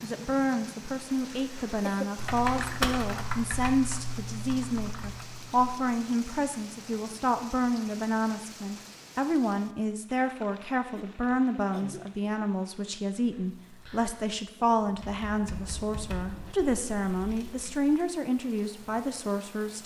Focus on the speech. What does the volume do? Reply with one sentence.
The loudness of the speech stays about the same.